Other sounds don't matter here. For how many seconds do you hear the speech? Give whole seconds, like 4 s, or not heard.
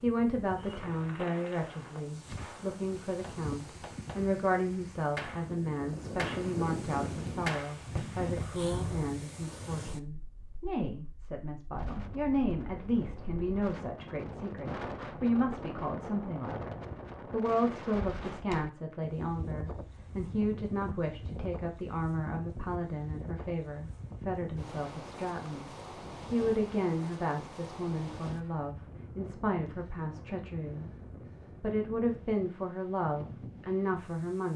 33 s.